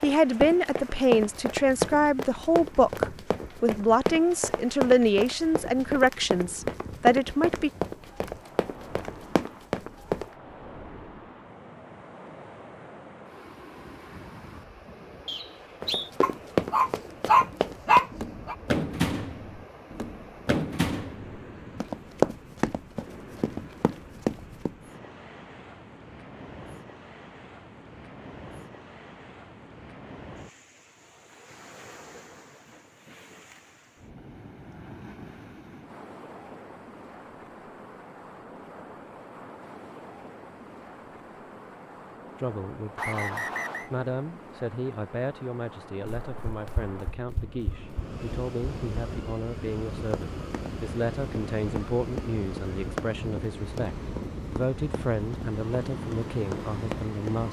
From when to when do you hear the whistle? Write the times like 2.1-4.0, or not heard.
15.2-16.1, 43.0-43.9.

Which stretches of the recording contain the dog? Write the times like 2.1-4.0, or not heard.
16.2-18.6.